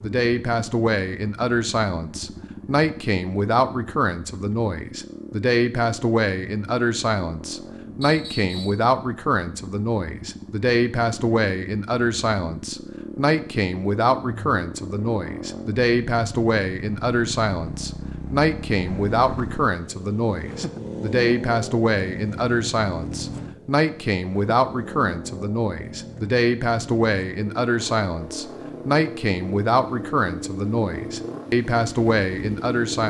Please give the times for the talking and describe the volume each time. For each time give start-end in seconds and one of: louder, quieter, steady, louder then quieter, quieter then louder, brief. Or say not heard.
0.0-33.0 steady.